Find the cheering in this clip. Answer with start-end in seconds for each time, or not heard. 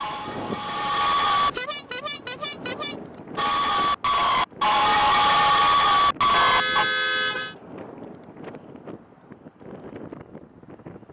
0.0-1.5, 3.4-6.8.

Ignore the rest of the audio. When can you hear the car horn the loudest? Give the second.
7 s.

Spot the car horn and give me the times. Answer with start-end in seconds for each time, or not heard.
1.4-3.0, 6.3-7.5.